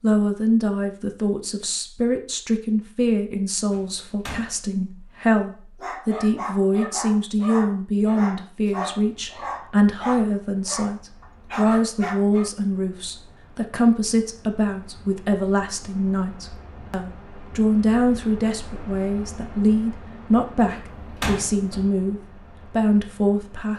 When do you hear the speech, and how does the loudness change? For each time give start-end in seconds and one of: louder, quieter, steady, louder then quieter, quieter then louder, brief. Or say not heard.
0.0-23.7 steady.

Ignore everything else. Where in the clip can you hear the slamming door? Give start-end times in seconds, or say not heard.
3.7-4.7, 20.6-21.9.